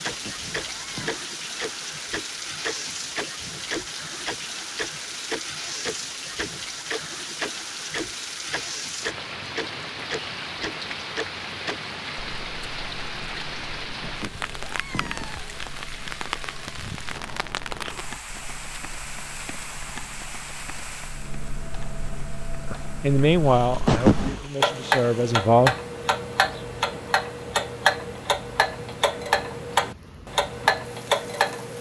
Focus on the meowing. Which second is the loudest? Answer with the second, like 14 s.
24 s.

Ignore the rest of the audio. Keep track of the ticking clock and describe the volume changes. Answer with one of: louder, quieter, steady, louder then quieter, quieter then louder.
quieter then louder.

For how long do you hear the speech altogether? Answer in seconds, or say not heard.
3 s.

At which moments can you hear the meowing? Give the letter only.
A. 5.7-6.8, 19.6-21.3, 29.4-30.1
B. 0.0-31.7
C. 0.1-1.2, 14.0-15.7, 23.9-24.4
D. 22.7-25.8
C.